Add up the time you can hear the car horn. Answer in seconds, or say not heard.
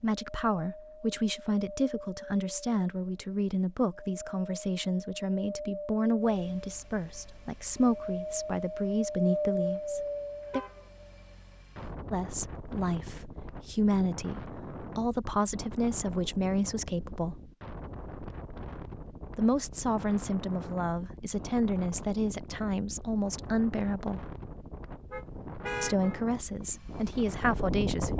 2 s.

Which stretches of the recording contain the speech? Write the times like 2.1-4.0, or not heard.
0.0-10.6, 12.1-17.4, 19.4-24.2, 25.8-28.1.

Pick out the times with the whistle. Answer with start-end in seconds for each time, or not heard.
not heard.